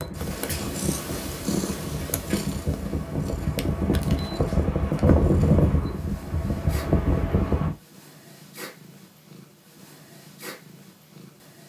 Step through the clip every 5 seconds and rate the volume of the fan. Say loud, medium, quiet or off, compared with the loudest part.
medium, loud, off.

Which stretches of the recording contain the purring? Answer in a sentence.
The purring can be heard from 0.0 to 11.6 s.